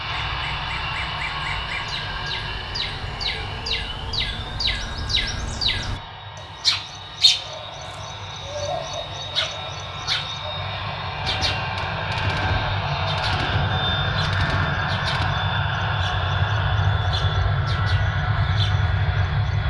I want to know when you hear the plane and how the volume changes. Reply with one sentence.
You can hear the plane from 0.0 to 19.6 s, getting quieter then louder.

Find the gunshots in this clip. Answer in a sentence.
You can hear the gunshots from 11.2 to 15.2 s.